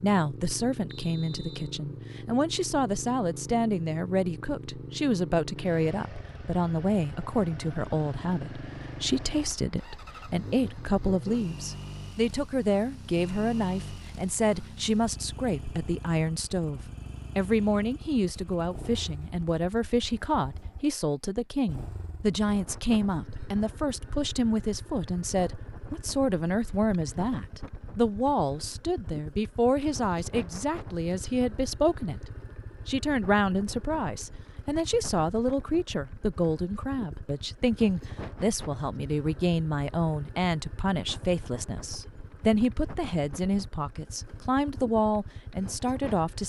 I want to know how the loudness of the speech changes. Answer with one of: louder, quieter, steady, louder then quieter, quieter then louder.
steady.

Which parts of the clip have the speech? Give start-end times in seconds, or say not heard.
0.0-46.4.